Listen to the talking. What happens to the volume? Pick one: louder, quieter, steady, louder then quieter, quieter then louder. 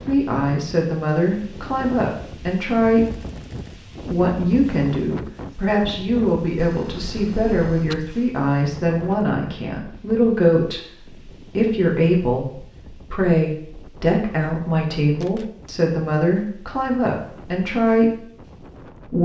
steady.